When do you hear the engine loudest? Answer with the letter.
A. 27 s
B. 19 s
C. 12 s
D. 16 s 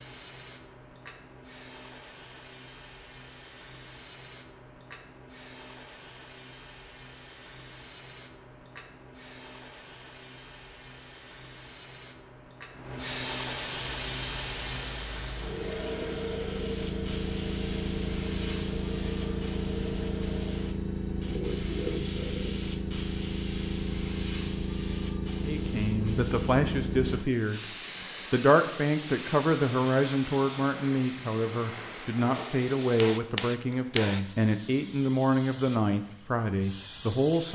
D.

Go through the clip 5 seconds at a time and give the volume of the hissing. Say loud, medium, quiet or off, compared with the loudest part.
quiet, quiet, loud, loud, loud, loud, loud, medium.